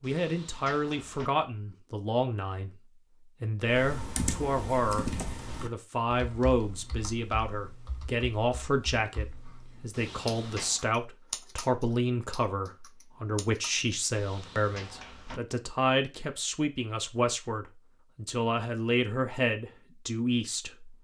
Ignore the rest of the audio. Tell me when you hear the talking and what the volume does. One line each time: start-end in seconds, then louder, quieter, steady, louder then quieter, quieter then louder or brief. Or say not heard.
0.0-2.7 brief
3.4-20.9 steady.